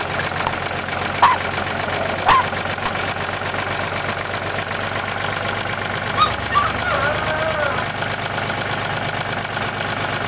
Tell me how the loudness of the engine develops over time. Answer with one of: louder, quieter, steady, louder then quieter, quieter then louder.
steady.